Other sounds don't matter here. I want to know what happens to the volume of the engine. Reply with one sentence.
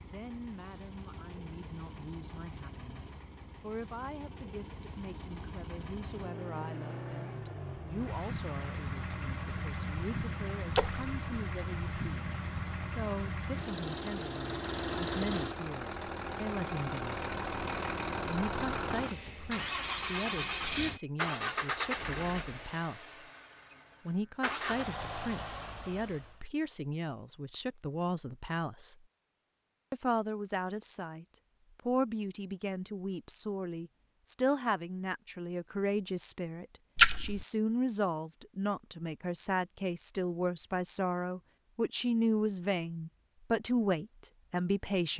The loudness of the engine goes up.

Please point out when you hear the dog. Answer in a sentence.
You can't hear the dog here.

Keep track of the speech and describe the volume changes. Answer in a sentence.
The loudness of the speech goes up.